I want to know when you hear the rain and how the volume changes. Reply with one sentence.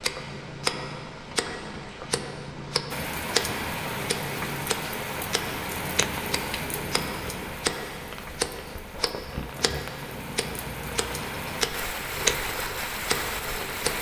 The rain can be heard from 2.9 to 13.9 s, getting quieter then louder.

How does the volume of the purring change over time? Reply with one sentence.
The loudness of the purring stays about the same.